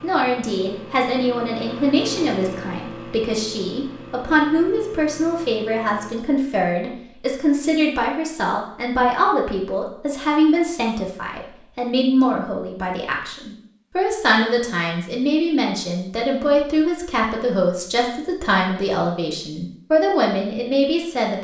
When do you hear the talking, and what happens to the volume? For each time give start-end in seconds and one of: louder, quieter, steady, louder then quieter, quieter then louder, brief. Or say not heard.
0.0-21.3 steady.